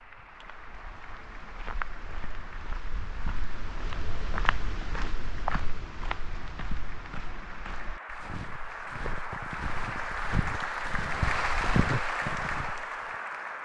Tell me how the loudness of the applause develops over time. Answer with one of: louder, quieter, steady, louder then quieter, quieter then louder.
louder.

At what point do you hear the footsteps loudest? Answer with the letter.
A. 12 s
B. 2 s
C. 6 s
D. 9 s
A.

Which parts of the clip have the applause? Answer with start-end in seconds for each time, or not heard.
0.0-13.6.